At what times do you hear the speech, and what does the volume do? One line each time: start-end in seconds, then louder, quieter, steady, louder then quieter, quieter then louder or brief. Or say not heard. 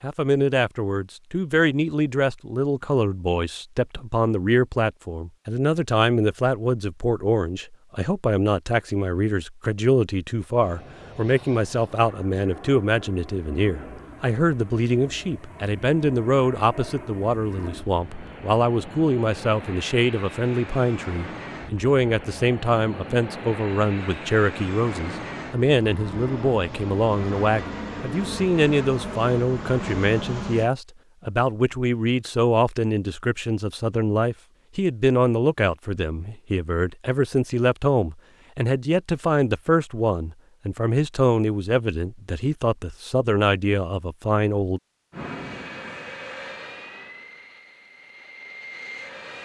0.0-44.8 steady.